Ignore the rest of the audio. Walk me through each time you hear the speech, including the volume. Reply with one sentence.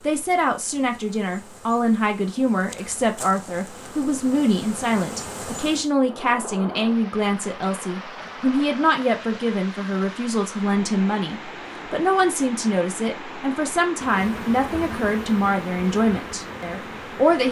You can hear the speech from 0.0 to 17.4 s, at a steady volume.